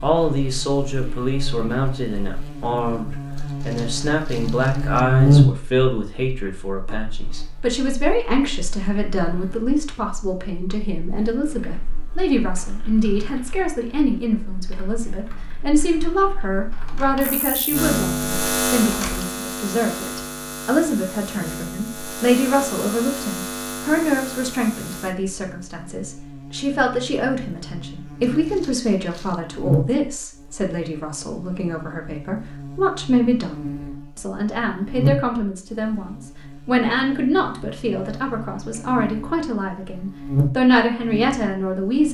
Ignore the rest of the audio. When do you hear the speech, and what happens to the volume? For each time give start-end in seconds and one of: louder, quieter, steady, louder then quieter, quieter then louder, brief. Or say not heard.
0.0-42.1 steady.